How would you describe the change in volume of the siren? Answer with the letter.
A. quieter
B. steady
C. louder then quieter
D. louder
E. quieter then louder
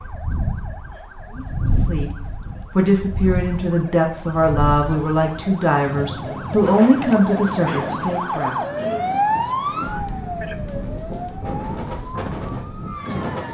C.